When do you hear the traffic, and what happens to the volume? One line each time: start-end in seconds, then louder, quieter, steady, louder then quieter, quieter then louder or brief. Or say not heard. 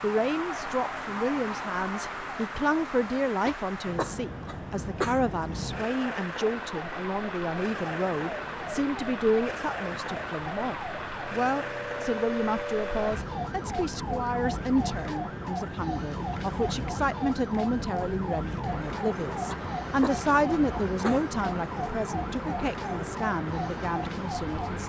0.0-24.8 steady.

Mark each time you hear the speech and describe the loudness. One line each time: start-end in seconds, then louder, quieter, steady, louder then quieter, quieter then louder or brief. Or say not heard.
0.0-24.8 steady.